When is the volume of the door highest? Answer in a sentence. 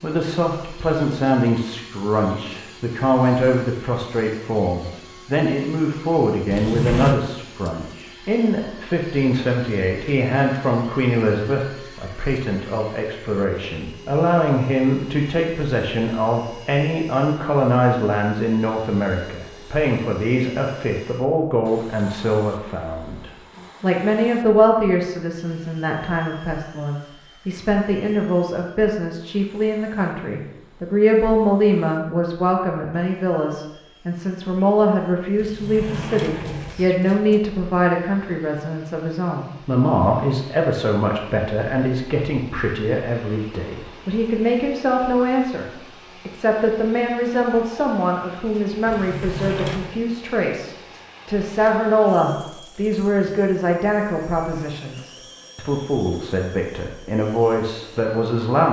The loudest moment of the door is at 7 seconds.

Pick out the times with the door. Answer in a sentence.
The door can be heard from 6.5 to 7.2 s, from 35.4 to 37.4 s and from 48.9 to 50.0 s.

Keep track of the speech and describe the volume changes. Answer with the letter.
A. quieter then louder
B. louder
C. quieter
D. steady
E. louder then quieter
D.